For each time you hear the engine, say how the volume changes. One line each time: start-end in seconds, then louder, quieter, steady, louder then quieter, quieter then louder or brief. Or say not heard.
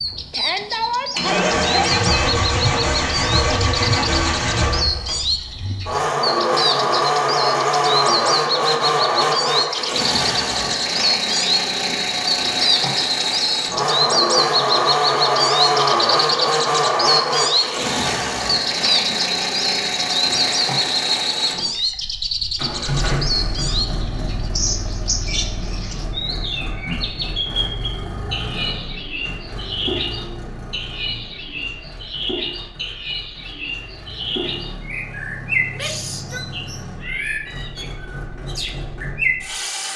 0.0-39.9 quieter.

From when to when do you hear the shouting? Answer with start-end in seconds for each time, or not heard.
0.3-2.0, 35.7-36.5.